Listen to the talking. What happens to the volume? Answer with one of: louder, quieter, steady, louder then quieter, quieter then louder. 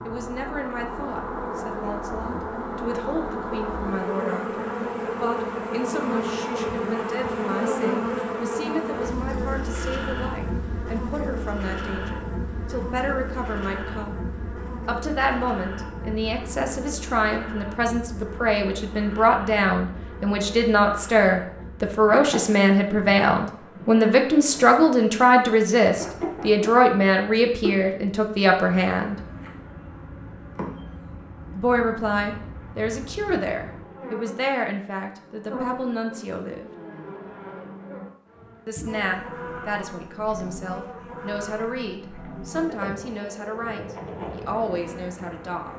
louder then quieter.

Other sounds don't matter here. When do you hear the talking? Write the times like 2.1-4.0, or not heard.
0.1-29.2, 31.6-36.7, 38.6-45.7.